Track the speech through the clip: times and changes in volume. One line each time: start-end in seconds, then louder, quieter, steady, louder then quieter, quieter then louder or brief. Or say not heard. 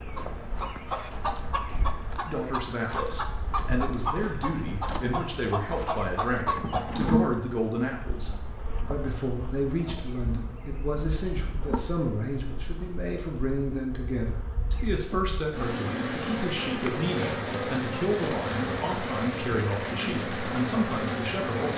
2.2-21.7 steady.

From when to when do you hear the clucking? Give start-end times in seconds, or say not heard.
0.1-6.9.